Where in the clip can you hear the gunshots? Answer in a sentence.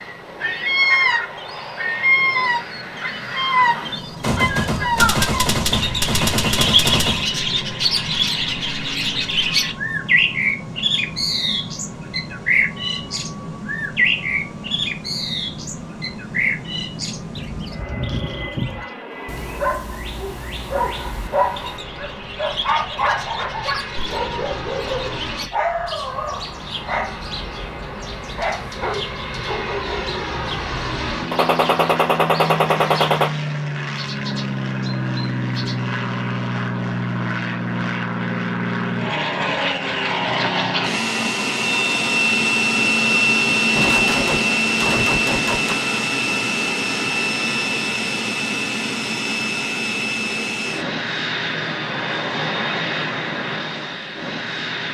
The gunshots can be heard from 4.2 to 7.2 s, from 31.3 to 33.3 s and from 43.8 to 45.8 s.